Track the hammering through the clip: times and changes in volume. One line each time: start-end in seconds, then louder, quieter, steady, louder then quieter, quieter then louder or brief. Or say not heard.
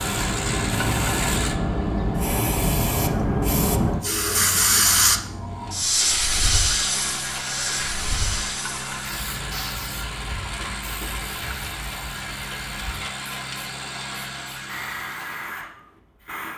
not heard.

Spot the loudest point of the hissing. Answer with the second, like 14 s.
5 s.